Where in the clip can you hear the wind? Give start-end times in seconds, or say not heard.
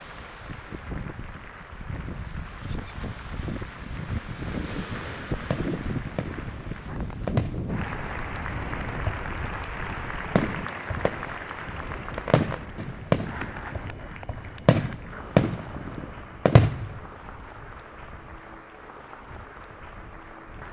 0.0-20.6.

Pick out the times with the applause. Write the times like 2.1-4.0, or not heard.
0.0-20.6.